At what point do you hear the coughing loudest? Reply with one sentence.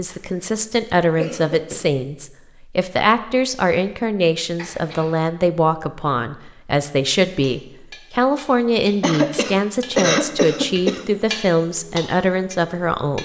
The loudest moment of the coughing is at 10 seconds.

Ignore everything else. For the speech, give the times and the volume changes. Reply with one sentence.
You can hear the speech from 0.0 to 13.2 s, at a steady volume.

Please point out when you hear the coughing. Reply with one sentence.
The coughing can be heard from 0.1 to 1.9 s, from 4.5 to 5.2 s and from 9.0 to 11.1 s.